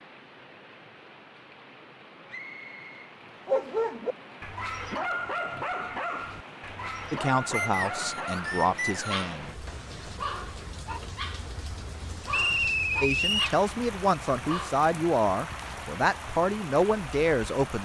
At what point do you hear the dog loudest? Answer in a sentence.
The loudest moment of the dog is at 4 seconds.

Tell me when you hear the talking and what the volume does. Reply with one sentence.
You can hear the talking briefly from 7.1 to 9.5 s; and from 13.0 to 17.7 s, at a steady volume.